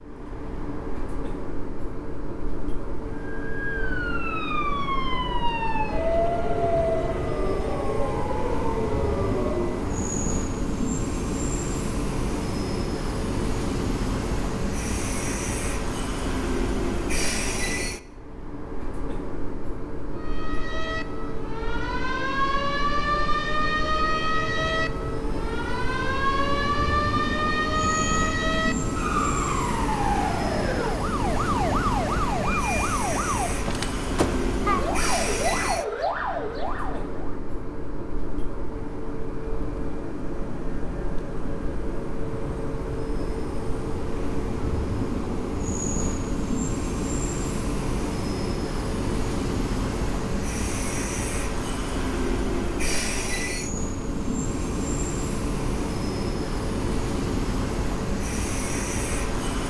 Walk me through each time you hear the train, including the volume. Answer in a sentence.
You can hear the train from 0.0 to 59.6 s, at a steady volume.